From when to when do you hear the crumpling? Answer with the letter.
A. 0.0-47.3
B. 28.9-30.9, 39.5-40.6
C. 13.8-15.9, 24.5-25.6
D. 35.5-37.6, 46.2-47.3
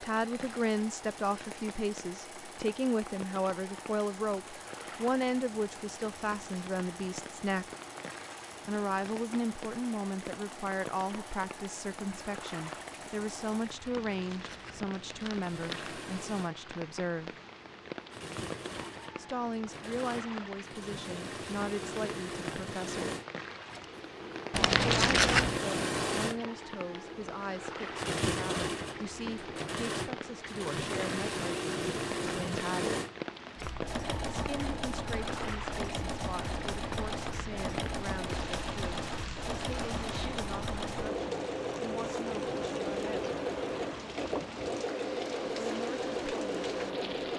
C.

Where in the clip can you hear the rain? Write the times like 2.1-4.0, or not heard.
0.0-47.3.